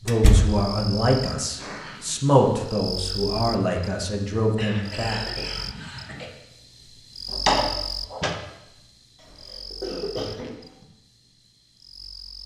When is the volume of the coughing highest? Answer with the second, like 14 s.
10 s.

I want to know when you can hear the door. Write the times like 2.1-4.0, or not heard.
0.1-0.6, 7.3-8.3.